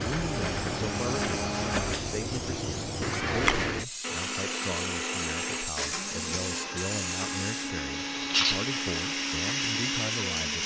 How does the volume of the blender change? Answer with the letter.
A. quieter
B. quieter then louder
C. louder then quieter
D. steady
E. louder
D.